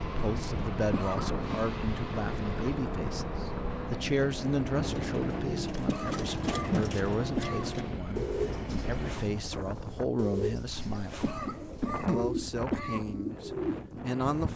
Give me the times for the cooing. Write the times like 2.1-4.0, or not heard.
4.9-14.5.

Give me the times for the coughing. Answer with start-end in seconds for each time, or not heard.
0.9-1.4, 5.8-7.7, 11.2-13.1.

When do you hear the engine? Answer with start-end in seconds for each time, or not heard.
0.0-9.2.